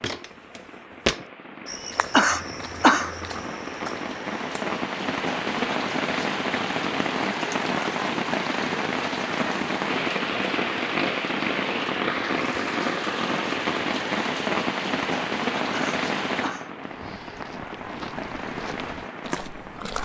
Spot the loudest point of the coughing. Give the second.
3 s.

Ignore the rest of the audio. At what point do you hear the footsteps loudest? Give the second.
1 s.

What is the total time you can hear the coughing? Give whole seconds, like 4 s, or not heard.
2 s.